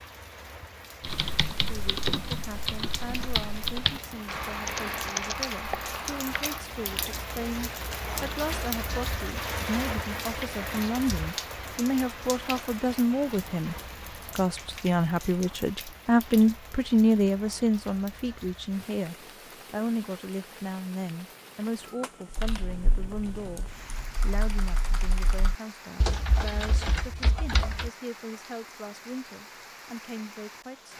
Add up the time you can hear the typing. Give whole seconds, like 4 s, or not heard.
11 s.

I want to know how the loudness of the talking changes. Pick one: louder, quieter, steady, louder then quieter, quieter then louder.
louder then quieter.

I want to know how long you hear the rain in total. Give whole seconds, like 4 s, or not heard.
31 s.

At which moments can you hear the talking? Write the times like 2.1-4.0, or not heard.
1.6-13.8, 14.3-30.9.